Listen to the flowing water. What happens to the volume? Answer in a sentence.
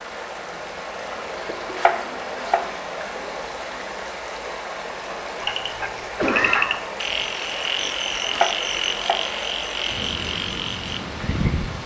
The volume of the flowing water stays about the same.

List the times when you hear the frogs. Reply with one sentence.
The frogs can be heard from 5.4 to 11.8 s.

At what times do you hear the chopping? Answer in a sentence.
The chopping can be heard from 1.8 to 3.0 s and from 8.3 to 9.3 s.